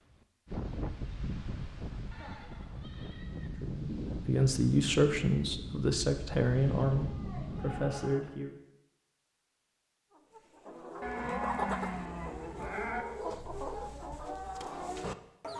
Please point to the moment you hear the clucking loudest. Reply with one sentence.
The volume of the clucking peaks at 12 seconds.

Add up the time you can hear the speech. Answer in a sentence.
The speech can be heard for 5 seconds in total.